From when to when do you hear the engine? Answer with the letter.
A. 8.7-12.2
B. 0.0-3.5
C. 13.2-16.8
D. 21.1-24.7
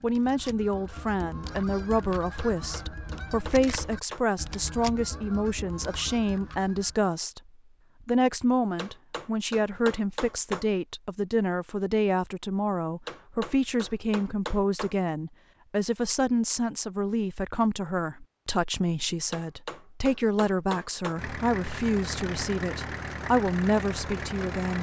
D.